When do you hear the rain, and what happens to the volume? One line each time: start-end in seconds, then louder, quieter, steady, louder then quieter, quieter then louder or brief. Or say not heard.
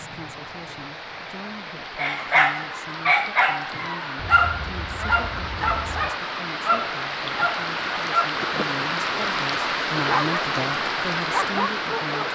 0.0-12.3 louder.